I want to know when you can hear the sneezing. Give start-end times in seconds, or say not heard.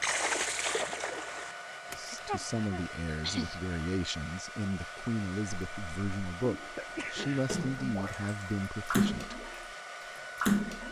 2.0-3.6, 6.8-7.5.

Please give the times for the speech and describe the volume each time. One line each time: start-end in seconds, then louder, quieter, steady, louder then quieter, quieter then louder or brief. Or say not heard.
1.9-9.4 steady.